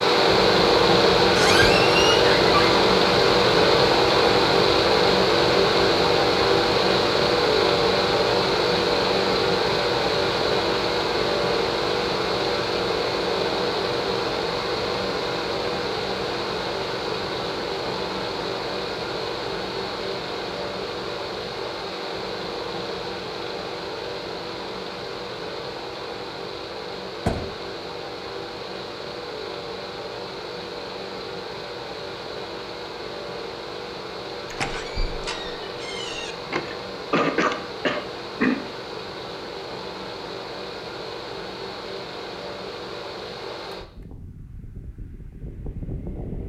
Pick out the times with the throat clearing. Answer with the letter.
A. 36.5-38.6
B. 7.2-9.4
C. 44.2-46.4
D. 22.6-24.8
A.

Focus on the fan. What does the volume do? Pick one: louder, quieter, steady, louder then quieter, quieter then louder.
quieter.